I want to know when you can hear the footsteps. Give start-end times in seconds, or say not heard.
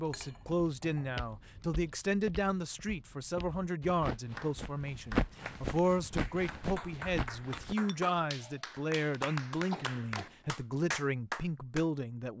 0.3-8.2.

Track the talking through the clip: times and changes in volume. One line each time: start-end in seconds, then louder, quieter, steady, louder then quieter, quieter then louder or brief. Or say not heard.
0.0-12.3 steady.